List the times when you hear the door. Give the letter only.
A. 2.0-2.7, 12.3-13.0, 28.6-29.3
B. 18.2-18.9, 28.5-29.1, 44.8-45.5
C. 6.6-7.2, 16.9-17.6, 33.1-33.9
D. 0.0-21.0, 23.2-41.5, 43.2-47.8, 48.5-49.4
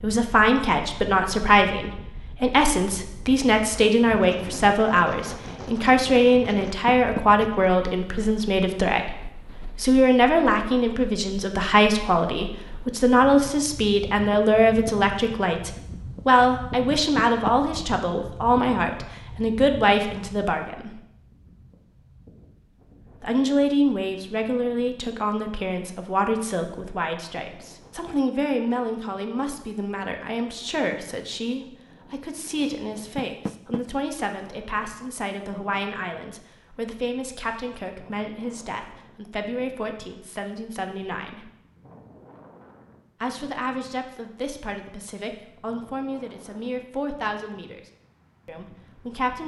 C.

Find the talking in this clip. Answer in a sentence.
The talking can be heard from 0.0 to 21.0 s, from 23.2 to 41.5 s, from 43.2 to 47.8 s and from 48.5 to 49.4 s.